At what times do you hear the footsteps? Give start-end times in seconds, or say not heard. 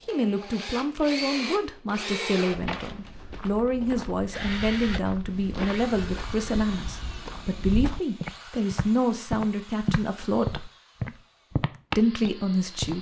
2.5-12.9.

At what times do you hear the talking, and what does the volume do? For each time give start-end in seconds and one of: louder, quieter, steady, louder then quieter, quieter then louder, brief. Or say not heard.
0.1-10.7 steady
11.9-12.9 brief.